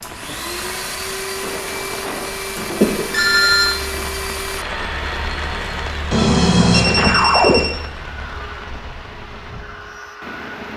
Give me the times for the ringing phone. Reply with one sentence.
The ringing phone can be heard from 2.8 to 3.8 s and from 6.1 to 7.7 s.